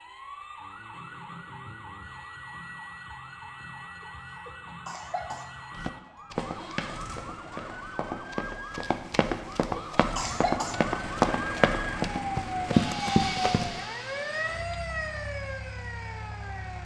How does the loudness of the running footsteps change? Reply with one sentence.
The loudness of the running footsteps goes up.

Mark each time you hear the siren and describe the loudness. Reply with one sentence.
The siren can be heard from 0.0 to 16.8 s, getting louder.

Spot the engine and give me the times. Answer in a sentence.
The engine can be heard from 6.3 to 16.8 s.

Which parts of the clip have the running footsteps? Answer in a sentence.
The running footsteps can be heard from 5.8 to 13.8 s.